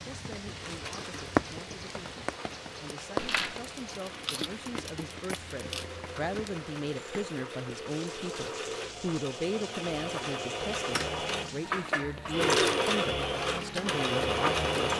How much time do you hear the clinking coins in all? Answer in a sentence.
The clinking coins can be heard for 3 seconds in total.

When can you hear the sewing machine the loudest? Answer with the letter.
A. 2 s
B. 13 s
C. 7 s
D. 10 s
B.